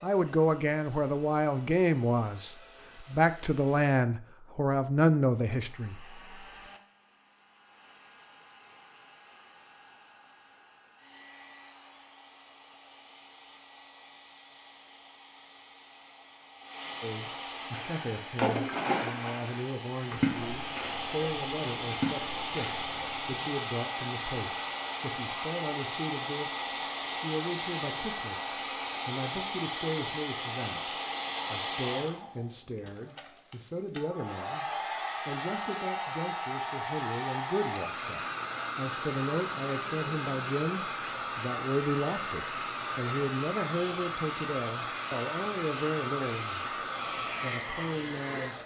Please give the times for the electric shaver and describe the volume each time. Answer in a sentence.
The electric shaver can't be heard in this clip.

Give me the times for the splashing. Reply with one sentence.
You can hear the splashing from 17.7 to 23.4 s.